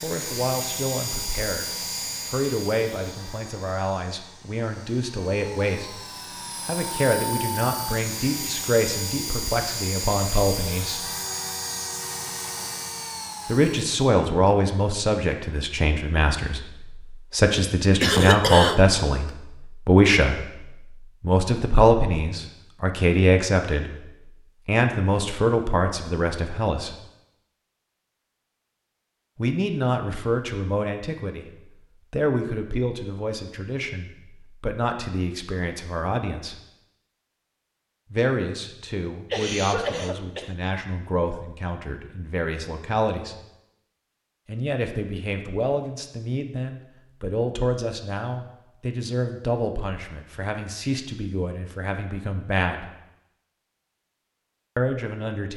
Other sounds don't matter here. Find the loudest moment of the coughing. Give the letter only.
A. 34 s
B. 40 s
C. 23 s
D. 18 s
D.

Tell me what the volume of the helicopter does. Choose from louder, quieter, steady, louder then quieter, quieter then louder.
quieter then louder.